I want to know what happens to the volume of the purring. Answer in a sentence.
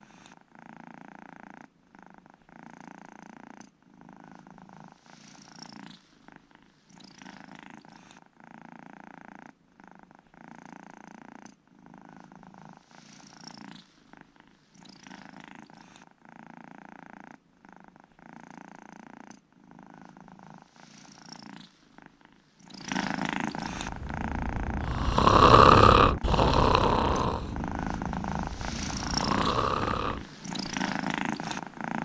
The loudness of the purring goes up.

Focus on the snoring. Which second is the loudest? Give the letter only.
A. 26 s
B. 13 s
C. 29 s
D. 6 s
A.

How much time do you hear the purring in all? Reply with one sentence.
The purring can be heard for 32 seconds in total.